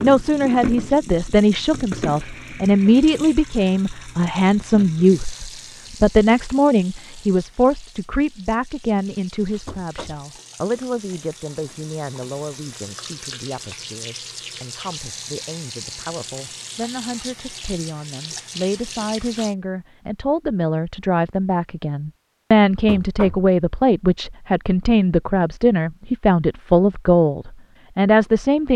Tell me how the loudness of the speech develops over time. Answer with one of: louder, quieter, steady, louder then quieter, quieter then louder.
quieter then louder.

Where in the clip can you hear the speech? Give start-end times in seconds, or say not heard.
0.0-28.7.